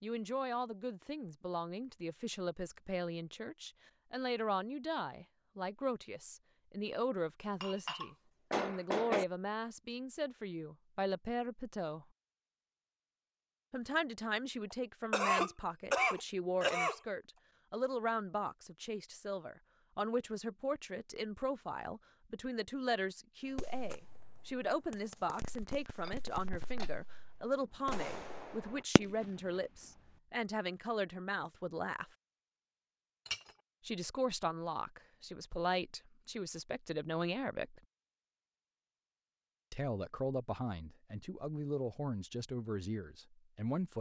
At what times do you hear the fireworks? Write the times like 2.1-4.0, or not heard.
23.4-29.3.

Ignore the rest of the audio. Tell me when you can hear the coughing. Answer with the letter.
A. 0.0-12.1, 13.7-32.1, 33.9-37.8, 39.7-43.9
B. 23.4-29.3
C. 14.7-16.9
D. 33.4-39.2
C.